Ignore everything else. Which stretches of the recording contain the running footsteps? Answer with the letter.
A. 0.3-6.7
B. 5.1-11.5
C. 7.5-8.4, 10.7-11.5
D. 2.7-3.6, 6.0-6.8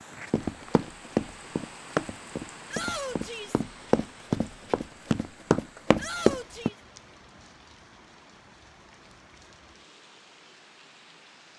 A.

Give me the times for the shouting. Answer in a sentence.
You can hear the shouting from 2.7 to 3.6 s and from 6.0 to 6.8 s.